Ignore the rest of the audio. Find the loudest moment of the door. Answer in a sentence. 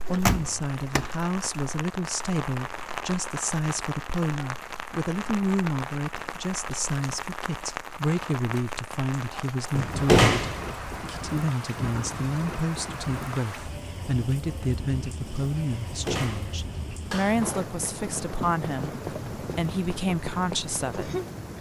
The loudest moment of the door is at 10 seconds.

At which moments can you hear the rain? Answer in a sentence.
You can hear the rain from 0.0 to 21.5 s.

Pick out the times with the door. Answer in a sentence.
The door can be heard from 0.1 to 1.1 s, from 9.8 to 10.9 s and from 15.8 to 17.4 s.